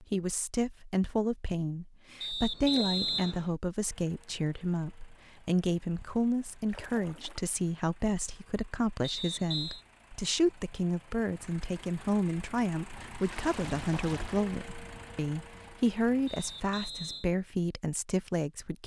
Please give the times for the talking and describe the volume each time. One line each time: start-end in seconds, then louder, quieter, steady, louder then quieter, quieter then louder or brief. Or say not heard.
0.0-18.8 steady.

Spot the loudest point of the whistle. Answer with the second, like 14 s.
3 s.